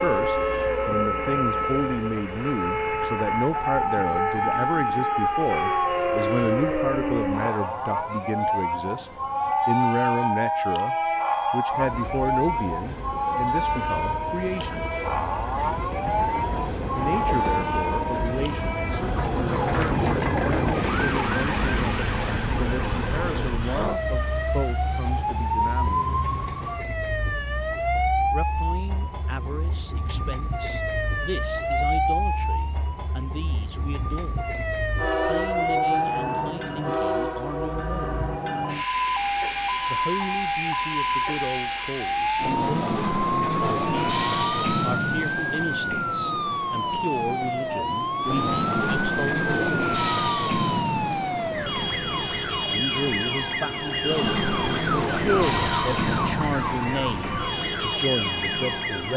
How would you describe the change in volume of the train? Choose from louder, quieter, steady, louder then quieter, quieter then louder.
quieter then louder.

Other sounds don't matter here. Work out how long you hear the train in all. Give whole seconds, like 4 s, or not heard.
59 s.